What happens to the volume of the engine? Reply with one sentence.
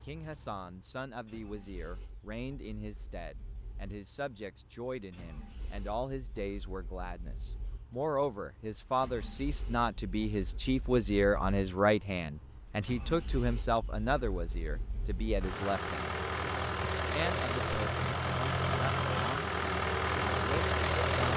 The volume of the engine goes up.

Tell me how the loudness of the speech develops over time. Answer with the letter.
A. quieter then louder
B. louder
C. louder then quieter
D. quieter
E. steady
C.